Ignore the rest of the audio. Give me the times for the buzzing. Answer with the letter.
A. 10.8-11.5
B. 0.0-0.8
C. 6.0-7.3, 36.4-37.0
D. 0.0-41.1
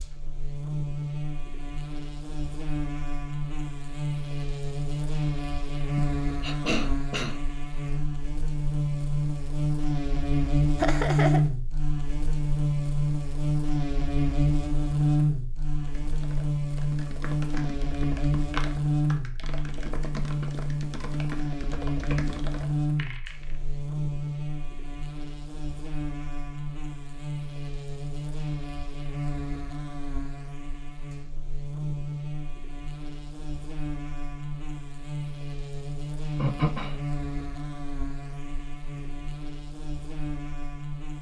D.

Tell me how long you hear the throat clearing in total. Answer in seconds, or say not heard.
2 s.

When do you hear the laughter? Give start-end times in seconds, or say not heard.
10.8-11.5.